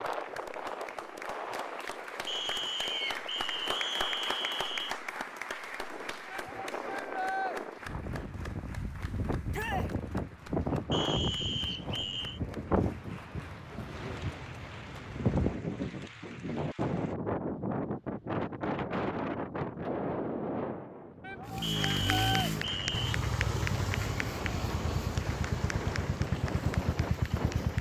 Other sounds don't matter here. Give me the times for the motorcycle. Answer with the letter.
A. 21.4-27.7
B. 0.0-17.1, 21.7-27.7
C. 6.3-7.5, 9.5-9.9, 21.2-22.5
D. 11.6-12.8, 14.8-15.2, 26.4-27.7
A.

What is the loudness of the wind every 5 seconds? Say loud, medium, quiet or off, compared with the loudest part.
medium, medium, loud, loud, medium, medium.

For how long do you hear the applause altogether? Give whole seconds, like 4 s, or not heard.
23 s.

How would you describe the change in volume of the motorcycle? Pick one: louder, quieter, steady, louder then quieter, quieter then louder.
steady.